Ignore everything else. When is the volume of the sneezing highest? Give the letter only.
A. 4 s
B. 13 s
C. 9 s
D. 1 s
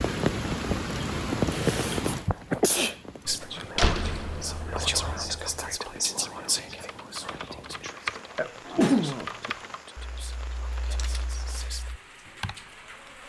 C.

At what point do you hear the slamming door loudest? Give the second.
4 s.